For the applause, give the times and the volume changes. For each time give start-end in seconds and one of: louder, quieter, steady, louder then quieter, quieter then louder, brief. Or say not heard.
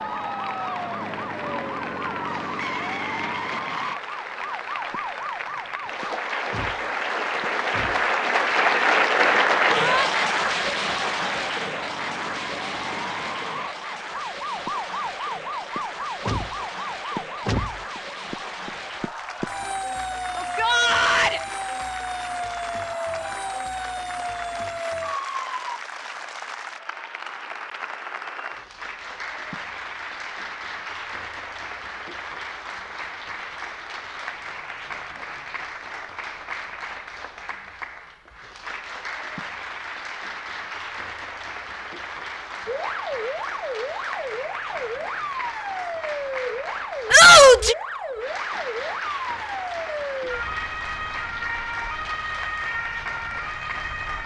0.0-54.2 quieter.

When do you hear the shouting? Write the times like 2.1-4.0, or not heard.
9.7-10.1, 20.4-21.4, 47.1-47.8.